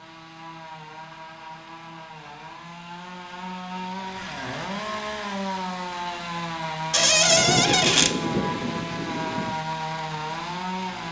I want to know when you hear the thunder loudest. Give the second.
8 s.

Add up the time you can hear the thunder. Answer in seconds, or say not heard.
2 s.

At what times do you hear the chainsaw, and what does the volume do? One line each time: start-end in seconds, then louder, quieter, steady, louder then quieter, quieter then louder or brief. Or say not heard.
0.0-11.0 louder.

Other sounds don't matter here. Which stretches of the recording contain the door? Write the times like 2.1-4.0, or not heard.
6.9-8.2.